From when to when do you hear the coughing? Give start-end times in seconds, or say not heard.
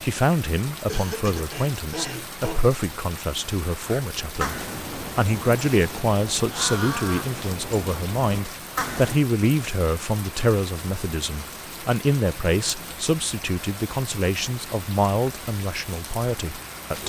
0.8-2.7.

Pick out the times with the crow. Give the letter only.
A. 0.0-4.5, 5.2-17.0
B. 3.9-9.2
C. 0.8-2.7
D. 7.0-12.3
B.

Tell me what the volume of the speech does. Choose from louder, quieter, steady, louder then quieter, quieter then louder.
steady.